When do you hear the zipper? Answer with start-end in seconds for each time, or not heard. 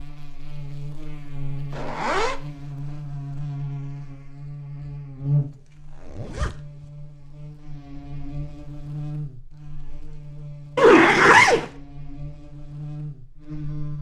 1.7-2.4, 5.4-6.8, 10.8-11.7.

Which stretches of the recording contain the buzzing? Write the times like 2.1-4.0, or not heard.
0.0-13.9.